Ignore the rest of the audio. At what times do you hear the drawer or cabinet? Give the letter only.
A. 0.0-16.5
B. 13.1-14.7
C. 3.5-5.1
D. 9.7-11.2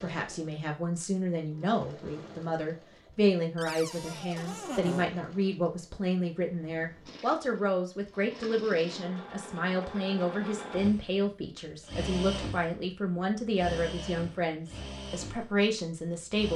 C.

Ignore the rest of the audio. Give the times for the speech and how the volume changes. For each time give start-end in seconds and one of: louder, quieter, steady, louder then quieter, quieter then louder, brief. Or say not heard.
0.0-16.5 steady.